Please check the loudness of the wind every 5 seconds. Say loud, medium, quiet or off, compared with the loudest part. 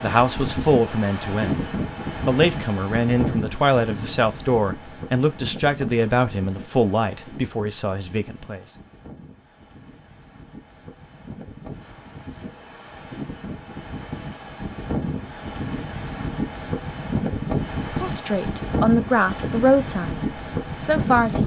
loud, quiet, medium, loud, loud.